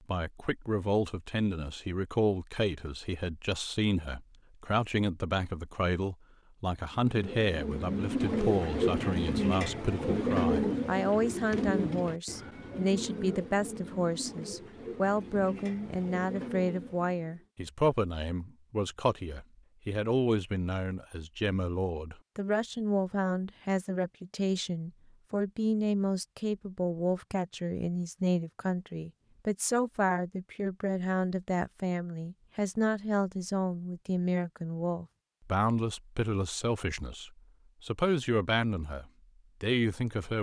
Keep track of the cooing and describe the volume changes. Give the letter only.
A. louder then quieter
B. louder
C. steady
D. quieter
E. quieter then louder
D.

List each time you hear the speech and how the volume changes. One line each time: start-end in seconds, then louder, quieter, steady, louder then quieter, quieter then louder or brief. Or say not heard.
0.1-40.3 steady.